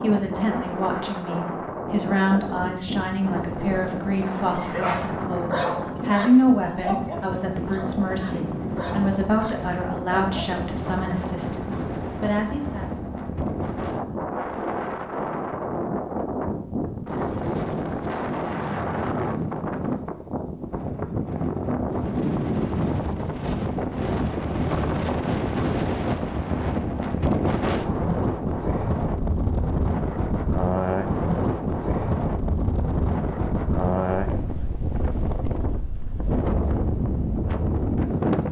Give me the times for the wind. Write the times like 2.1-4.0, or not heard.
0.0-38.4.